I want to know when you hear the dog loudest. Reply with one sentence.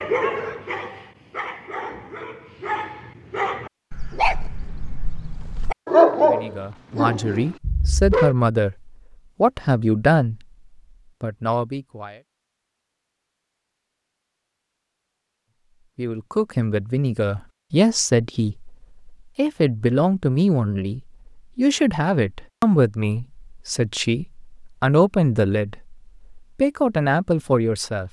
The volume of the dog peaks at 6 seconds.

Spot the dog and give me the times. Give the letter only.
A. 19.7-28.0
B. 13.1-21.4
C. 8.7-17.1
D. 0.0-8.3
D.